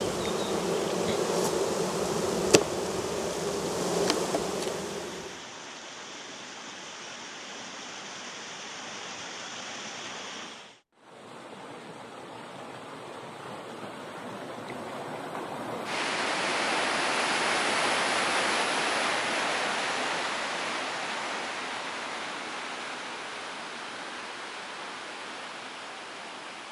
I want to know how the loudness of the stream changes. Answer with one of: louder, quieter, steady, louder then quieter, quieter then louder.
louder then quieter.